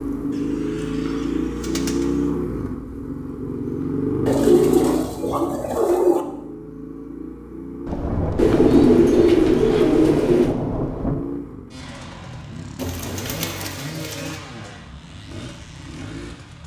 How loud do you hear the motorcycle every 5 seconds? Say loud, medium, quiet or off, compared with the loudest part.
loud, medium, medium, quiet.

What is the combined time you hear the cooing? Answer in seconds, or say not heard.
8 s.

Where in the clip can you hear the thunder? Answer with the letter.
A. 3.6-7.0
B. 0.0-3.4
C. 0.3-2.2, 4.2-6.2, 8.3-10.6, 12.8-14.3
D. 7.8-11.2
D.